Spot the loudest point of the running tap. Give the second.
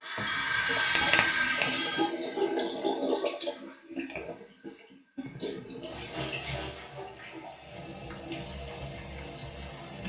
1 s.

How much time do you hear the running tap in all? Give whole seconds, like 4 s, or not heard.
10 s.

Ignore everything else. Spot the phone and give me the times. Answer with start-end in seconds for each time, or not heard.
0.2-2.1, 5.2-6.0.